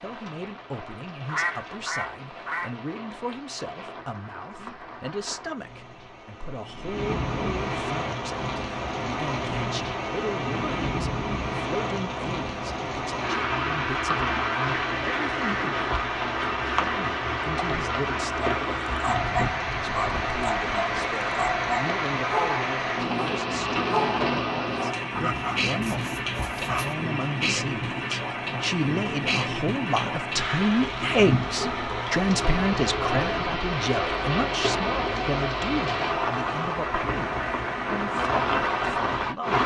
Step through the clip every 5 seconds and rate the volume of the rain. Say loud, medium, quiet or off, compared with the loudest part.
quiet, medium, loud, loud, loud, loud, loud, loud.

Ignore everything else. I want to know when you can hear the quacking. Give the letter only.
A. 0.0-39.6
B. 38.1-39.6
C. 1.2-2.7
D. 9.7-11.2
C.